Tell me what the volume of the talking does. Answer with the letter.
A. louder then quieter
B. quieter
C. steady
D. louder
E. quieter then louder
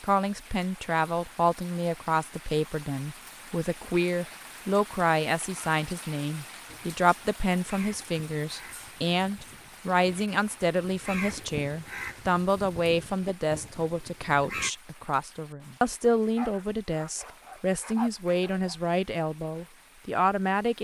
C.